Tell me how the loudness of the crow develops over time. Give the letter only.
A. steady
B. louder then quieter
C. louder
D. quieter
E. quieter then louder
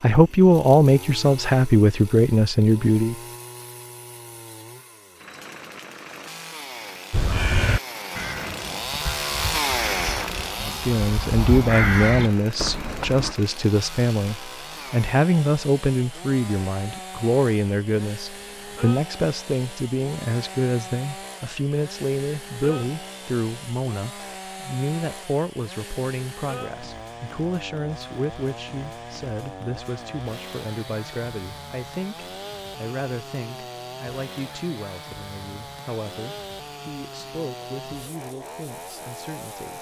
E.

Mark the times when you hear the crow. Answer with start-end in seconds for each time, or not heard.
7.1-13.3.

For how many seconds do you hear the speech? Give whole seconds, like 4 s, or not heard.
32 s.